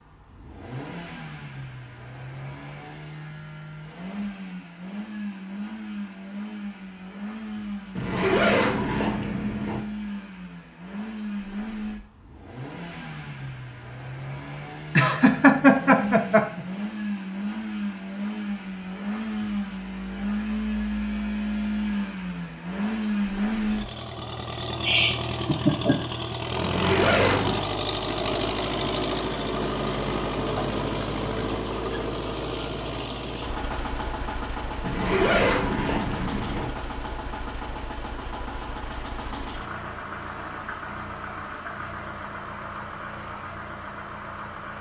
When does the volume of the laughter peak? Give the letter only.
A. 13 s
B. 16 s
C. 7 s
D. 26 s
B.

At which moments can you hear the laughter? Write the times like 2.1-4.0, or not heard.
14.9-16.6, 24.8-26.1.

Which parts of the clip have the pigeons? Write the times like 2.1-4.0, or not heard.
not heard.